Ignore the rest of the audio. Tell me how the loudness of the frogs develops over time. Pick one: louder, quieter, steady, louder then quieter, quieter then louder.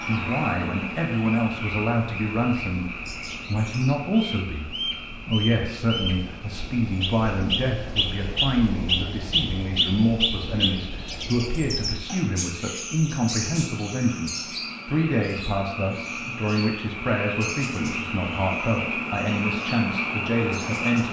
quieter then louder.